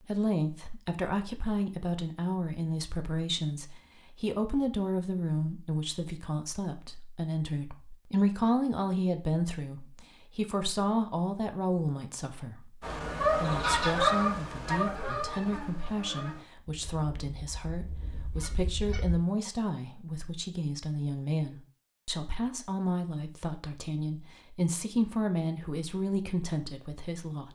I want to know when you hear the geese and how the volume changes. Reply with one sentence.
You can hear the geese from 12.8 to 19.1 s, getting quieter then louder.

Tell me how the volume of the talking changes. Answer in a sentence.
The loudness of the talking stays about the same.